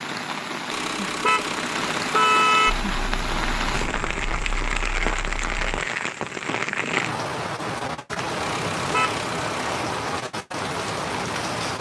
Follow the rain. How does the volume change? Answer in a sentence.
The loudness of the rain stays about the same.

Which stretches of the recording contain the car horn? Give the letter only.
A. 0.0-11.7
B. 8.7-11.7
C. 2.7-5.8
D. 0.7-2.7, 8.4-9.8
D.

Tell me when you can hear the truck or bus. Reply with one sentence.
The truck or bus can be heard from 2.7 to 5.8 s.